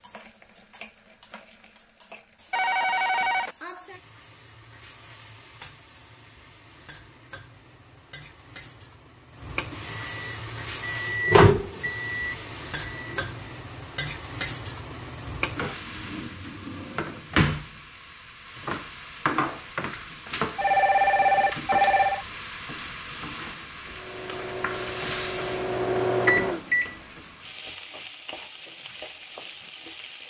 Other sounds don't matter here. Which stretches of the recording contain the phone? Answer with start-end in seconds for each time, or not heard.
2.5-3.5, 20.6-22.2.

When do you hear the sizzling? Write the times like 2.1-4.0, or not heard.
0.0-30.2.